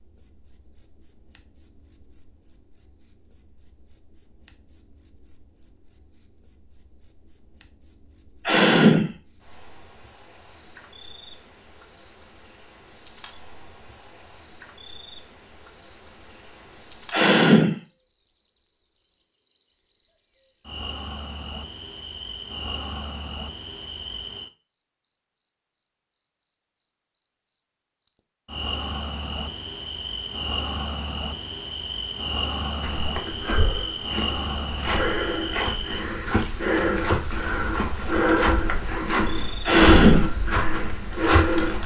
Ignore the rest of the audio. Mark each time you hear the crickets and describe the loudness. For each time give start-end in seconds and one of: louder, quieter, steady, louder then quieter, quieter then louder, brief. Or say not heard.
0.0-41.8 louder.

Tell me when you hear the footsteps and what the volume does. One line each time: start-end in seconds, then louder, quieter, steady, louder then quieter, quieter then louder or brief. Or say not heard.
32.8-41.8 louder.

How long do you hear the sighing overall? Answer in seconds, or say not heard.
2 s.